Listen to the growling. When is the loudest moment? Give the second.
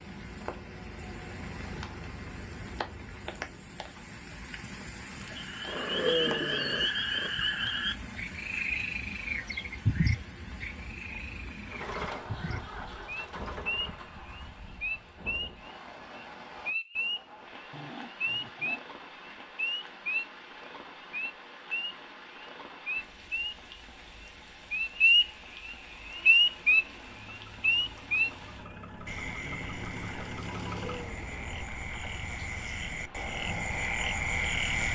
6 s.